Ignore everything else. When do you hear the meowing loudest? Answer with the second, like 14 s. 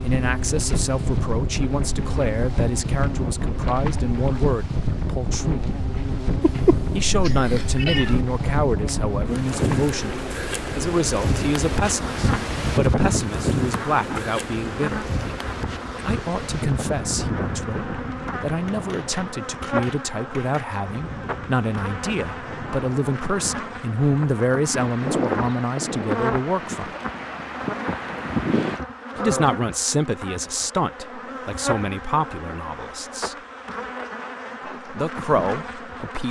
7 s.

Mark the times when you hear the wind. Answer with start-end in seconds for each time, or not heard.
0.0-28.8.